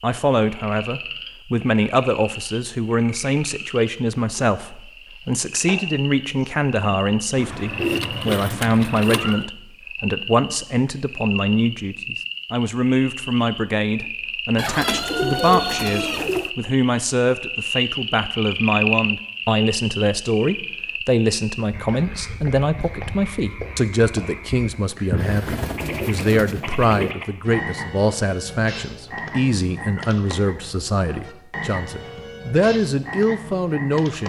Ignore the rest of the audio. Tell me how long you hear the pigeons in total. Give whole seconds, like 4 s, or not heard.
6 s.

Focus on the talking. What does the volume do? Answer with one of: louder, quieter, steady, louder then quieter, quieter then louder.
steady.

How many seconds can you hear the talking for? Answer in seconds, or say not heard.
34 s.